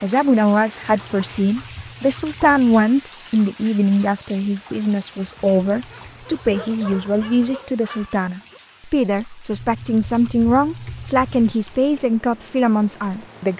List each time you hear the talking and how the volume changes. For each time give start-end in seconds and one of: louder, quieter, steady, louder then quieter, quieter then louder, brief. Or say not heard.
0.0-13.5 steady.